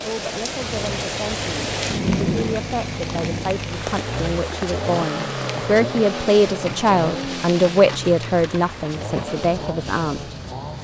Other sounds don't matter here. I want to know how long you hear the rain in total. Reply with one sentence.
You can hear the rain for 11 seconds altogether.